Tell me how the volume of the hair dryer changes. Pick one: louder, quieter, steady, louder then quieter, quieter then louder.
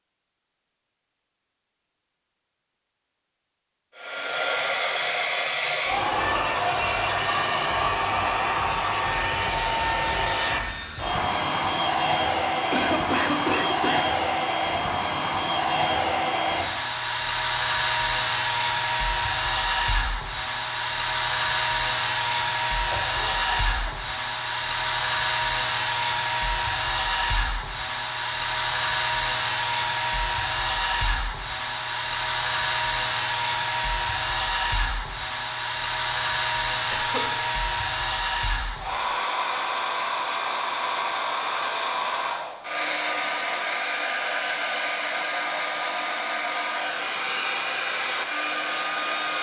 steady.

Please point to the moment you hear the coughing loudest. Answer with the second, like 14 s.
13 s.